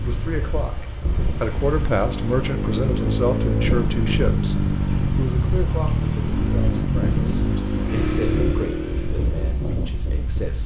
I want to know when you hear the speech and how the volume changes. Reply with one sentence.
The speech can be heard from 0.0 to 10.6 s, getting quieter.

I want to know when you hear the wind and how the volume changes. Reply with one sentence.
You can hear the wind from 0.0 to 10.6 s, at a steady volume.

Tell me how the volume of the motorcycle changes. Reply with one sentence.
The volume of the motorcycle stays about the same.